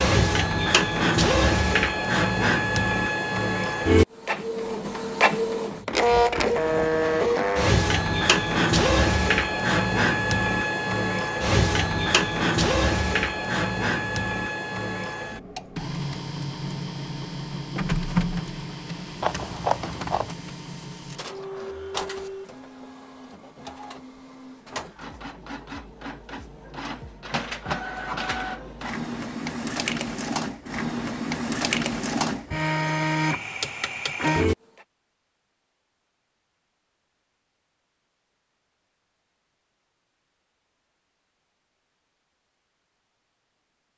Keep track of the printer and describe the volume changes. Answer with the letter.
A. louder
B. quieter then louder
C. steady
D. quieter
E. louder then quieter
B.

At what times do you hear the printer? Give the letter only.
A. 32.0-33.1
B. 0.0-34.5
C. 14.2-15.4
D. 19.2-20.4
B.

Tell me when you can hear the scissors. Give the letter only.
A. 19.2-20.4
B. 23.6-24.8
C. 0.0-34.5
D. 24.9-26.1
A.